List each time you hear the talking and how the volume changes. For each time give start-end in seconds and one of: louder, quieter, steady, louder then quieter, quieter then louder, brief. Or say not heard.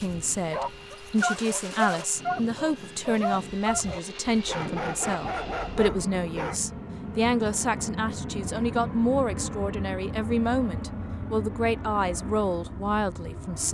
0.0-13.7 steady.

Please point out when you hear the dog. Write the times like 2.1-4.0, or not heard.
0.0-6.5.